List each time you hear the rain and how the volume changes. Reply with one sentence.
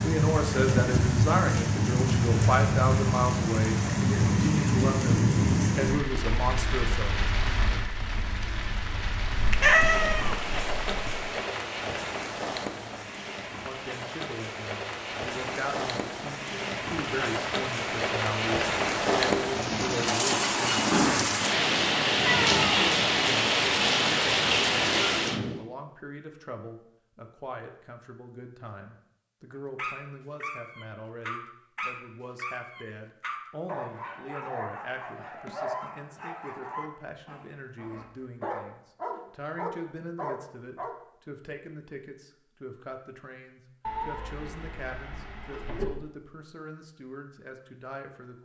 The rain can be heard from 0.0 to 25.6 s, getting quieter then louder.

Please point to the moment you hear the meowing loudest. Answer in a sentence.
The loudest moment of the meowing is at 10 seconds.